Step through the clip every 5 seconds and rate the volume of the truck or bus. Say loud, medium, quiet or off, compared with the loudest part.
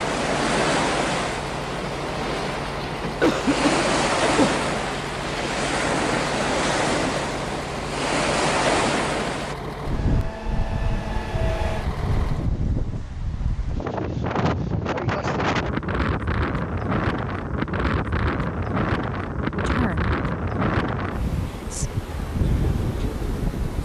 loud, loud, loud, off, off.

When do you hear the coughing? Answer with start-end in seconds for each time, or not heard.
3.0-4.7.